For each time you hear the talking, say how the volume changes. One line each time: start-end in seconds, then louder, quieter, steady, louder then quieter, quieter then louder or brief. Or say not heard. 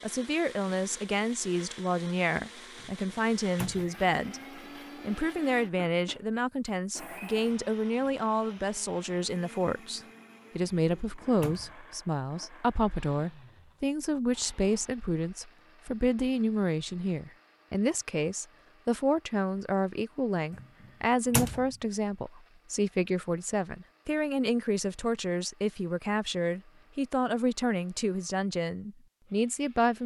0.0-30.0 steady.